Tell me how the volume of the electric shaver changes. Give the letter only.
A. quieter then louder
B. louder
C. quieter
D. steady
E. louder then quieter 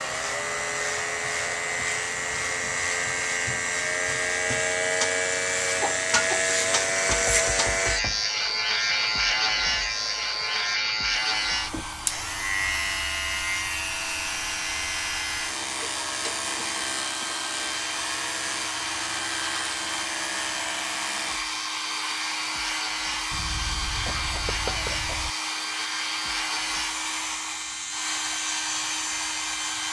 C.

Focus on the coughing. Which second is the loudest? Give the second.
6 s.